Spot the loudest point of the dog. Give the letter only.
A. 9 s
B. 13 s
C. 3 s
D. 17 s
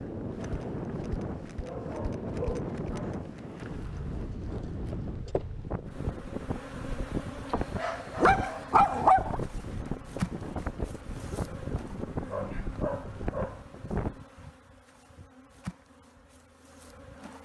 A.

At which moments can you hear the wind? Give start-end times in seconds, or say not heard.
0.0-14.2.